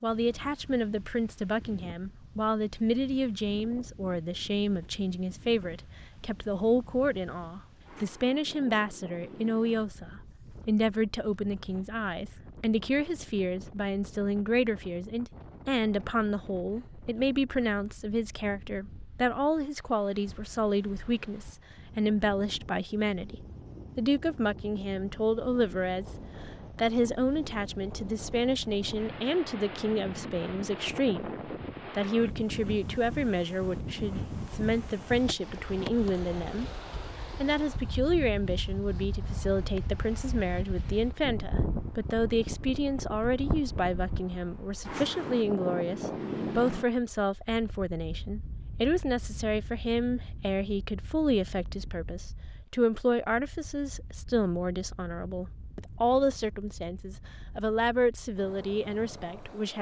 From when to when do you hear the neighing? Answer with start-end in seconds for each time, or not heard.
not heard.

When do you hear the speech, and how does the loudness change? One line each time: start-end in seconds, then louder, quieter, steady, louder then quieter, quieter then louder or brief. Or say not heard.
0.0-26.1 steady
26.8-36.8 steady
37.4-59.7 steady.